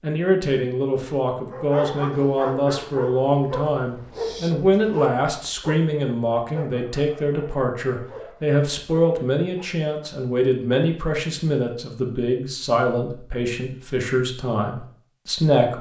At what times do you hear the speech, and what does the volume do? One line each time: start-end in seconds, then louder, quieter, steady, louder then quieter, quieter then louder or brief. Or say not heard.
0.0-15.7 steady.